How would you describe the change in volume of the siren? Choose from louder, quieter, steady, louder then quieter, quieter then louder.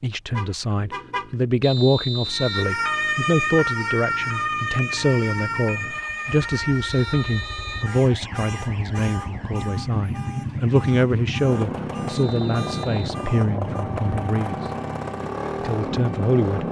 quieter.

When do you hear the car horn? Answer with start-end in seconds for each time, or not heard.
0.3-1.4.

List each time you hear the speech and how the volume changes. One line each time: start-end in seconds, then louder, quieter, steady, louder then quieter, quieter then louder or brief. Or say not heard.
0.0-14.6 steady
15.6-16.6 brief.